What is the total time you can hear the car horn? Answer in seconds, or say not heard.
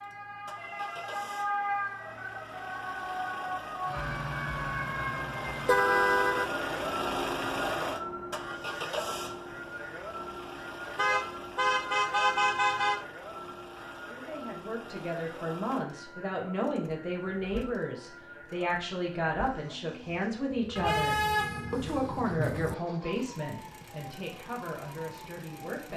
5 s.